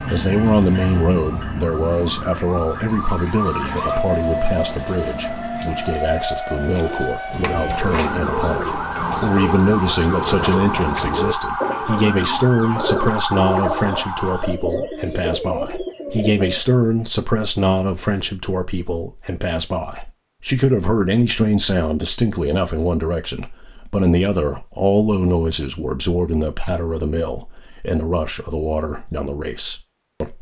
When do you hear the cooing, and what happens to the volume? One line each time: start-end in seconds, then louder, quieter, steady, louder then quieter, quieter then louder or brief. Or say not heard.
6.6-16.6 steady.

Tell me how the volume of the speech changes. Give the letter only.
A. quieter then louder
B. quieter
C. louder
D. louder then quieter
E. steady
E.